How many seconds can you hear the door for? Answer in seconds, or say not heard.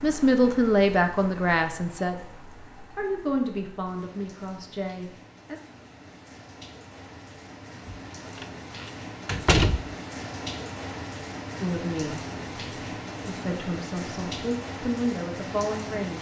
2 s.